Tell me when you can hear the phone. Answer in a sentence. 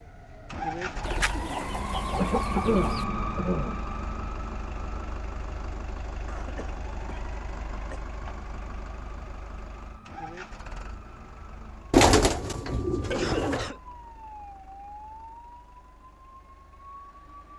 The phone can't be heard in this clip.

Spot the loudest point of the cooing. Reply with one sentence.
The volume of the cooing peaks at 12 seconds.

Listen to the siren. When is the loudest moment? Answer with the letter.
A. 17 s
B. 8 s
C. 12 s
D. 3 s
D.